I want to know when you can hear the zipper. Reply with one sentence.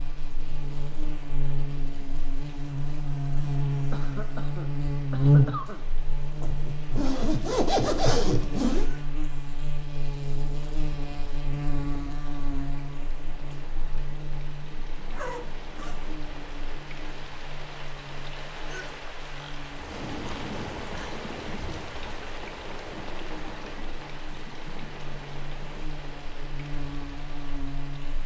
You can hear the zipper from 6.4 to 8.9 s and from 15.1 to 16.1 s.